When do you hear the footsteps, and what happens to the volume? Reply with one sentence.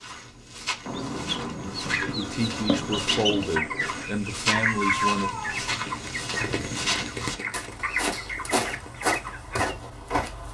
The footsteps can be heard from 0.0 to 10.4 s, getting louder.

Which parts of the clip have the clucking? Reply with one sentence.
You can hear the clucking from 0.9 to 9.8 s.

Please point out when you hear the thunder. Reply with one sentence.
You can hear the thunder from 0.8 to 4.0 s.